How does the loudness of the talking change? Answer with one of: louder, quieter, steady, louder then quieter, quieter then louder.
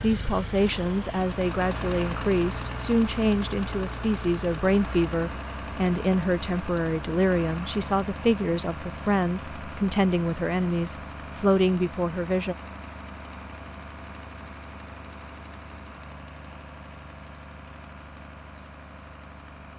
steady.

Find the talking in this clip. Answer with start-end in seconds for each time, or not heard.
0.0-12.6.